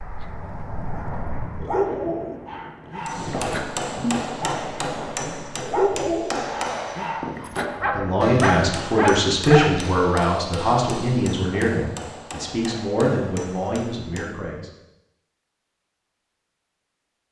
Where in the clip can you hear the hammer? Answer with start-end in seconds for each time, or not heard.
3.0-14.4.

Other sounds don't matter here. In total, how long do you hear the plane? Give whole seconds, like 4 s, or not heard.
2 s.